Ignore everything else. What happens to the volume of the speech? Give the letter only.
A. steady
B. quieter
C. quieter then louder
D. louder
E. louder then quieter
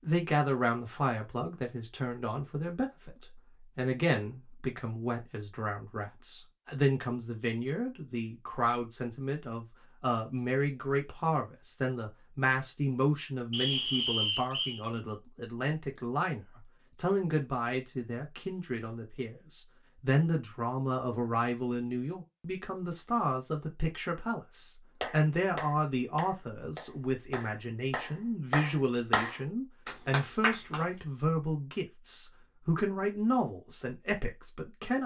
A.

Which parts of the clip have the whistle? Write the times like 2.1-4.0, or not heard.
13.5-14.8.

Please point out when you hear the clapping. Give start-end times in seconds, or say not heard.
25.0-30.8.